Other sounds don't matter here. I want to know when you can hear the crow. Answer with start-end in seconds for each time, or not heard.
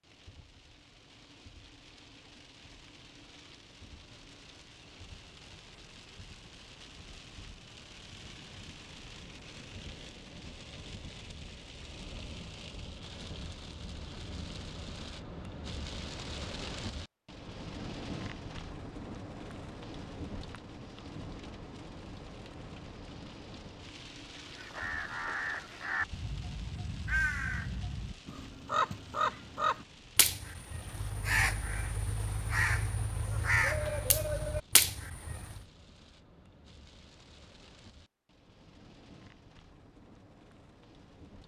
24.5-35.6.